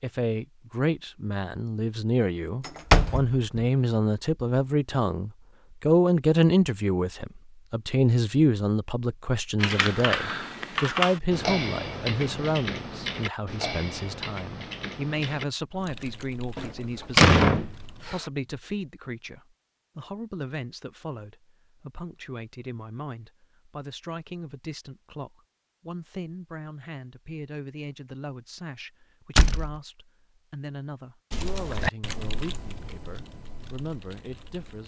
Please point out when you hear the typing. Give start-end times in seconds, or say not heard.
9.6-18.1, 31.3-34.8.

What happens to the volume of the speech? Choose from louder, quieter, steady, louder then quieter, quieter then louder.
quieter.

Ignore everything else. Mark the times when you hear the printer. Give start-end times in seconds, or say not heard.
not heard.